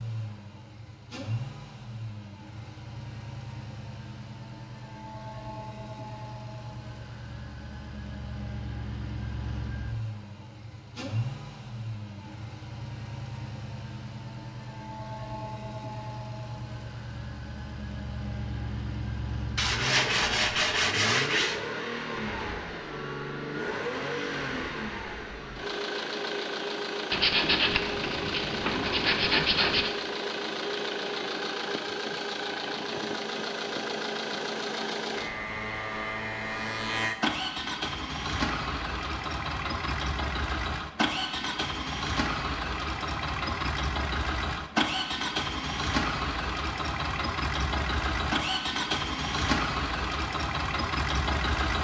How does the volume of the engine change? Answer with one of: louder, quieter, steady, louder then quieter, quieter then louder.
louder.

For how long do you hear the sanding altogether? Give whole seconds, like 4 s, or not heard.
5 s.